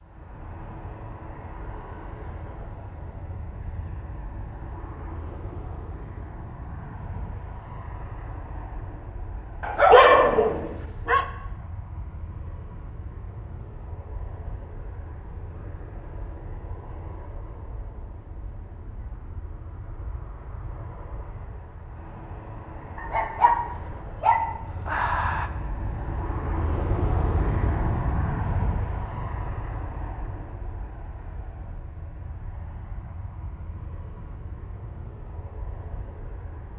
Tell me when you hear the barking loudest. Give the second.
10 s.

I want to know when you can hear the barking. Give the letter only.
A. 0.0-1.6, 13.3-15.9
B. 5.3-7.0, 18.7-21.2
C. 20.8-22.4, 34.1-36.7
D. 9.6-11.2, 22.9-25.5
D.